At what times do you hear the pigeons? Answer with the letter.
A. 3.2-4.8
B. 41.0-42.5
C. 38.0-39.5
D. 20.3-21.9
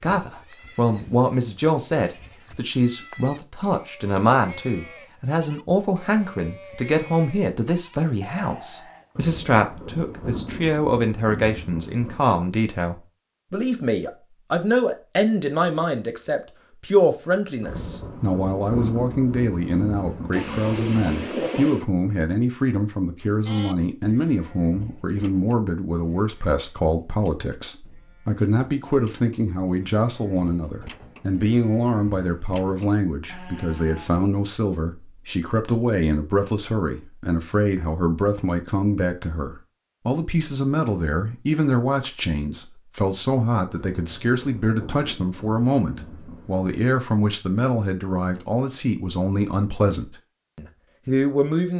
D.